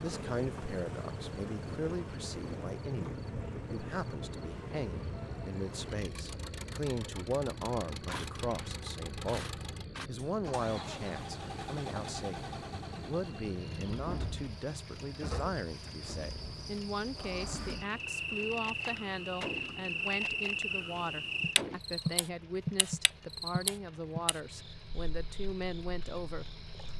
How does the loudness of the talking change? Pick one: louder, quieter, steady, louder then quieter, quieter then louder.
steady.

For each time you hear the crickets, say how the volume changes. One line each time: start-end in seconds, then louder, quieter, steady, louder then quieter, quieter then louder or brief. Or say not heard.
0.0-26.9 louder.